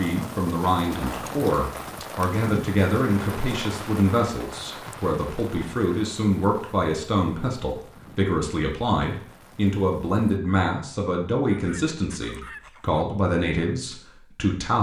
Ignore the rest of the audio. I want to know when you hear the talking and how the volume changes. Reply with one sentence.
The talking can be heard from 0.0 to 14.7 s, at a steady volume.